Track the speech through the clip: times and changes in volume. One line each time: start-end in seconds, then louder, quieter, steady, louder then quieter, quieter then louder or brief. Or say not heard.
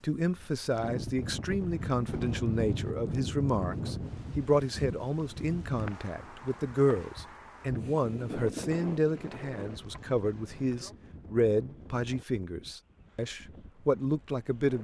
0.0-14.7 steady.